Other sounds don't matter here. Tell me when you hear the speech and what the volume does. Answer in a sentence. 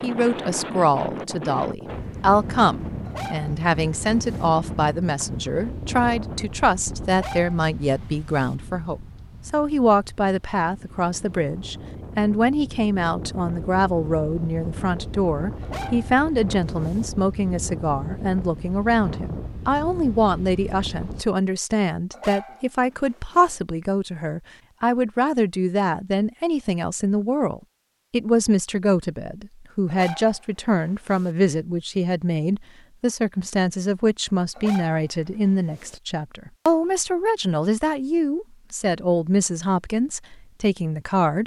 The speech can be heard from 0.0 to 41.4 s, at a steady volume.